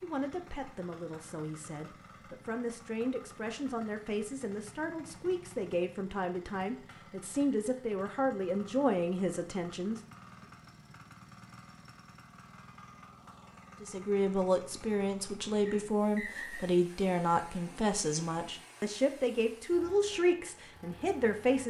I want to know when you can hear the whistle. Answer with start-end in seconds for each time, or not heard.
15.7-16.6.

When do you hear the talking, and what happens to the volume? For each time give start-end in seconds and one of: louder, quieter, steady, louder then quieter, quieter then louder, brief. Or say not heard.
0.0-10.0 louder
13.8-21.6 steady.